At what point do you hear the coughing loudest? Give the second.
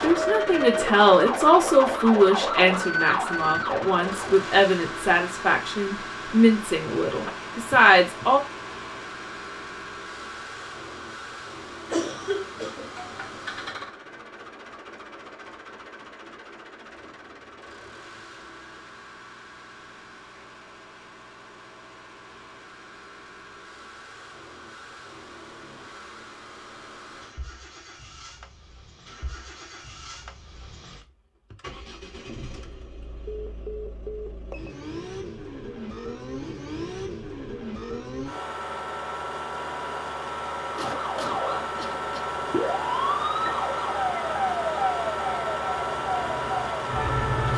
12 s.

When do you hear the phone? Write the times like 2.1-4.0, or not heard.
7.1-8.2, 33.2-34.3.